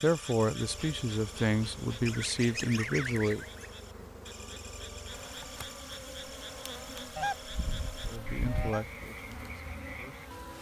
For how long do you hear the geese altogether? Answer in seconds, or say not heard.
3 s.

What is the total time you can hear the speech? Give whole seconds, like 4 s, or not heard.
6 s.